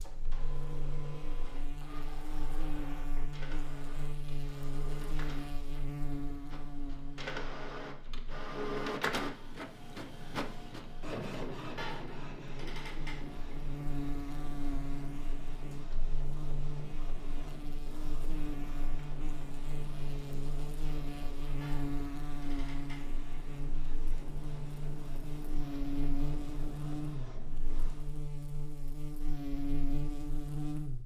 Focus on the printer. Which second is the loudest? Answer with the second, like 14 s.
9 s.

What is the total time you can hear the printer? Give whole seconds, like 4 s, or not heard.
28 s.